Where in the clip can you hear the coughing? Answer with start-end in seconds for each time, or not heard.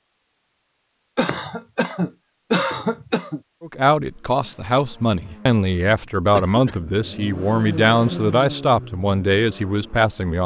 1.1-3.4, 6.3-6.8.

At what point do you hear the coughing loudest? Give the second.
3 s.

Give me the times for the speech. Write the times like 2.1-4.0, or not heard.
3.6-10.4.